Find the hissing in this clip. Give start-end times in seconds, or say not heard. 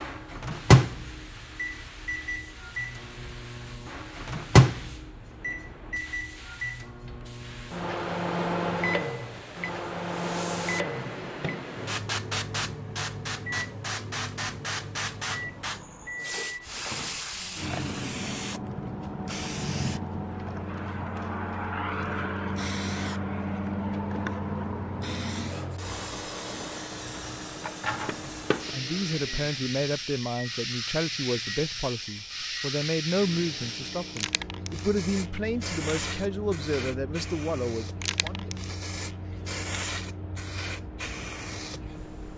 0.0-42.3.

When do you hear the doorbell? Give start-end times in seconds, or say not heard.
not heard.